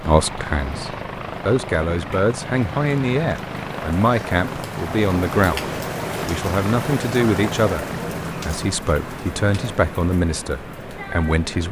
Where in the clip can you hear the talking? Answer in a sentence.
The talking can be heard from 0.0 to 7.8 s and from 8.4 to 11.6 s.